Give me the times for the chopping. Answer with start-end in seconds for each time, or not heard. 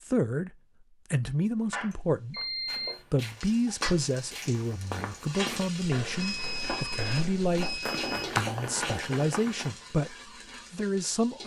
1.2-3.0, 6.5-9.1.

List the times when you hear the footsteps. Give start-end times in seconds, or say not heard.
2.6-9.7.